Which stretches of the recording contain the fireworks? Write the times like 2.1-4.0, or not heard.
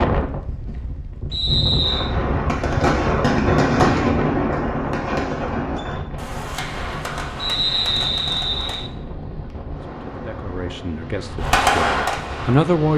1.8-8.8, 11.4-12.8.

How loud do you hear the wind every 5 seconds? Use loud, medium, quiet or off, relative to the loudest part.
loud, medium, medium.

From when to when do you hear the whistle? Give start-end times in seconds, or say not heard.
1.3-2.1, 7.3-8.9.